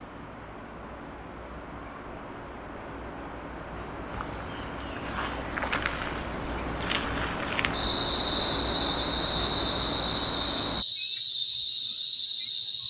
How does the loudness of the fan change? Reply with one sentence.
The volume of the fan goes up.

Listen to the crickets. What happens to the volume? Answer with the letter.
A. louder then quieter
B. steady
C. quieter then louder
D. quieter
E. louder
B.